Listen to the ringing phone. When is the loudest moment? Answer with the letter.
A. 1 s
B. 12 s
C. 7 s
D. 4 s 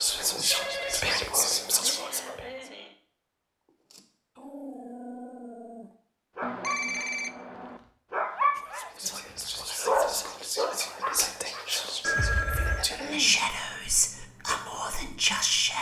B.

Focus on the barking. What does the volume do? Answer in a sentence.
The volume of the barking goes up.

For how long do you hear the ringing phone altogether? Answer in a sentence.
The ringing phone can be heard for 3 seconds in total.